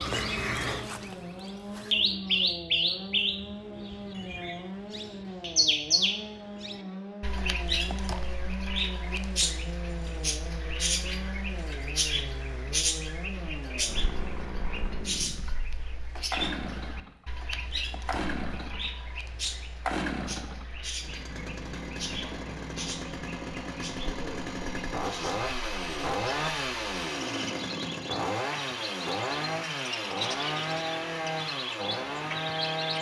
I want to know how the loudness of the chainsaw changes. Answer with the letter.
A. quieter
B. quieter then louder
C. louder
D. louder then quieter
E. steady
C.